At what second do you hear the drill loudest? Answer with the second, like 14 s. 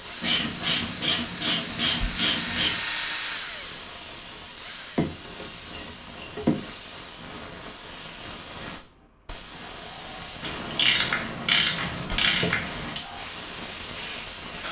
3 s.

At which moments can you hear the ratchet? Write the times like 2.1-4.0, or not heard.
0.2-2.8, 5.0-6.7, 10.4-13.0.